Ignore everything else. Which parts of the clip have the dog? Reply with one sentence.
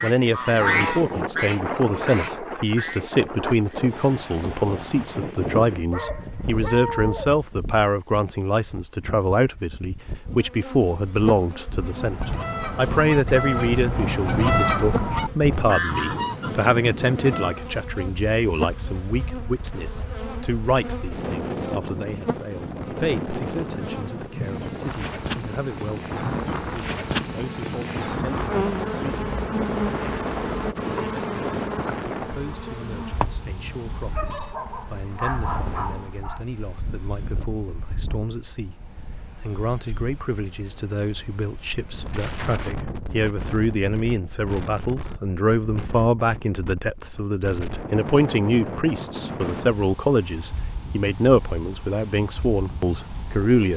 The dog can be heard from 5.9 to 7.4 s and from 34.1 to 36.4 s.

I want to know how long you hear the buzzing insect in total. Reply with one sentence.
You can hear the buzzing insect for 26 seconds altogether.